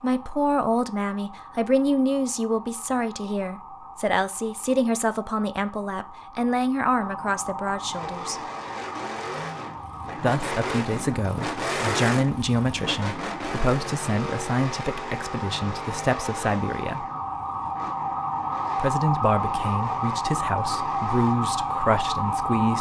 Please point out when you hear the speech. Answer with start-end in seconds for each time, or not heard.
0.0-8.4, 10.2-17.1, 18.8-22.7.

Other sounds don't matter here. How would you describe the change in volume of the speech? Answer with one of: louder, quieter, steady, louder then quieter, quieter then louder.
steady.